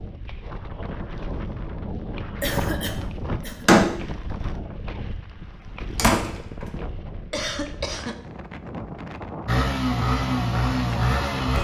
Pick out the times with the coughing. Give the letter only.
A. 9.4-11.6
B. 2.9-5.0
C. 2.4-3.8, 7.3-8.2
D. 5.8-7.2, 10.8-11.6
C.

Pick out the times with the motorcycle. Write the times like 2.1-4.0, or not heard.
9.4-11.6.